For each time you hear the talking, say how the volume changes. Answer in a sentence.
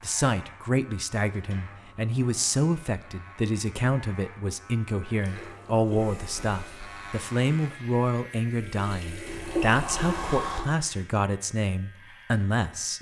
You can hear the talking from 0.0 to 12.9 s, at a steady volume.